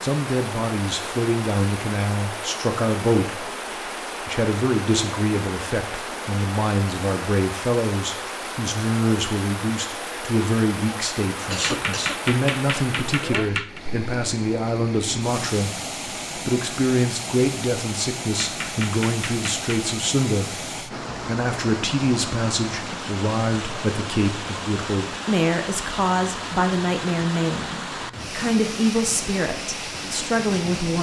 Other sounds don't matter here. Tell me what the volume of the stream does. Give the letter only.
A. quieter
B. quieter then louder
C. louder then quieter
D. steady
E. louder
D.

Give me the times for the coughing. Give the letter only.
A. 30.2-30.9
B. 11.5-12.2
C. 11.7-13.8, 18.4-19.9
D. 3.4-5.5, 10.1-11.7
B.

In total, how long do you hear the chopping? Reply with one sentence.
You can hear the chopping for 4 seconds altogether.